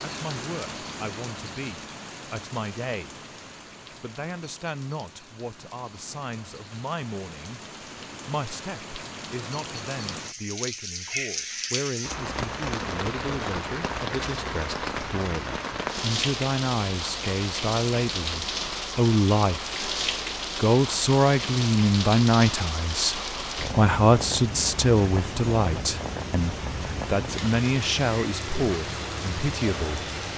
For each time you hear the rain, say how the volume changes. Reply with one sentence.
The rain can be heard from 0.0 to 30.3 s, getting louder.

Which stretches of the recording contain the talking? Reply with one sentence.
You can hear the talking from 0.0 to 3.2 s, from 3.9 to 7.6 s, from 8.2 to 19.8 s and from 20.6 to 30.1 s.